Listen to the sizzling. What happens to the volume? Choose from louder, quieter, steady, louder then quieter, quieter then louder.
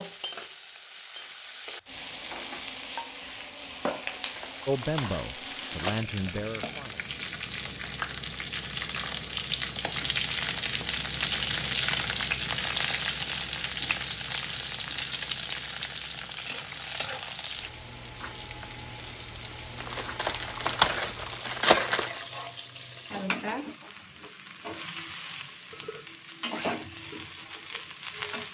louder then quieter.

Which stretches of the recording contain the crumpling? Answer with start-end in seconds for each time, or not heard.
4.0-6.0, 19.8-22.2.